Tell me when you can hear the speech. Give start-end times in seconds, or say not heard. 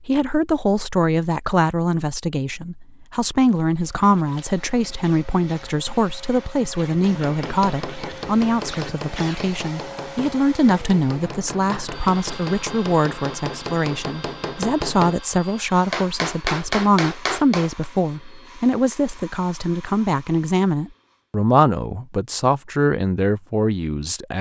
0.1-24.3.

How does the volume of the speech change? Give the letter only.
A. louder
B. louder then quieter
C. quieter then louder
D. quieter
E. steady
E.